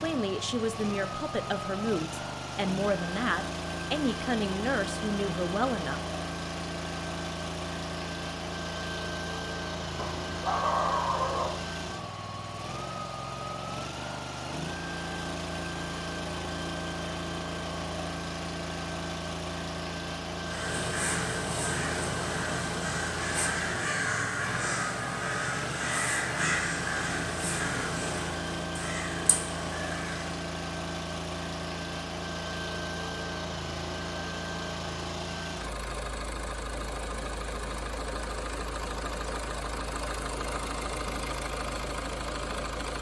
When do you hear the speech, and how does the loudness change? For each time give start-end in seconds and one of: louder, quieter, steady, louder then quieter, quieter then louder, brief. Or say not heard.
0.0-6.0 steady.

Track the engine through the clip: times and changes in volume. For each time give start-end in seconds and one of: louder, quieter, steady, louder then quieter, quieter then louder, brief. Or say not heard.
0.0-42.9 steady.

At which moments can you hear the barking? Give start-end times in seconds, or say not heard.
9.9-11.6.